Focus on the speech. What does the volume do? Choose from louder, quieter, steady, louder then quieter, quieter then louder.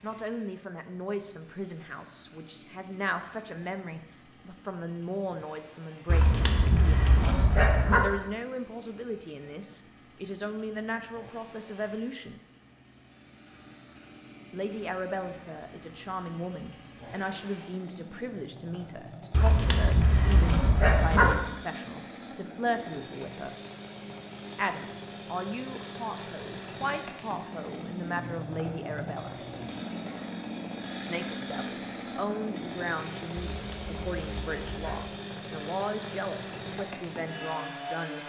steady.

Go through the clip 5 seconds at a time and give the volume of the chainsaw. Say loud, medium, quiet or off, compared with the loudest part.
quiet, quiet, quiet, medium, medium, loud, loud, loud.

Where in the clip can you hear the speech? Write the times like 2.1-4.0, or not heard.
0.0-12.4, 14.5-23.6, 24.6-29.4, 31.0-38.2.